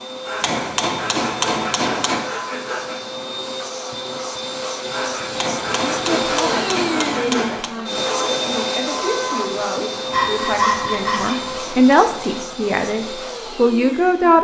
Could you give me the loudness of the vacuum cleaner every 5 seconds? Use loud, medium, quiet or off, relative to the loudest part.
medium, loud, medium.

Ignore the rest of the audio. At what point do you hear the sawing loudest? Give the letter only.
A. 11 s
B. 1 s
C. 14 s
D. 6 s
A.